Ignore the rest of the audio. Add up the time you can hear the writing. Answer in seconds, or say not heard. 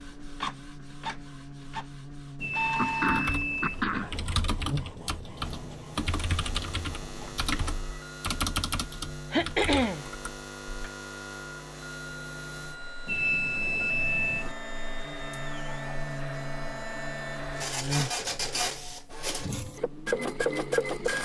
not heard.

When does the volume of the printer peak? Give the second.
21 s.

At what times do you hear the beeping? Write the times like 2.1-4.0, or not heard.
2.4-3.9, 13.1-14.6.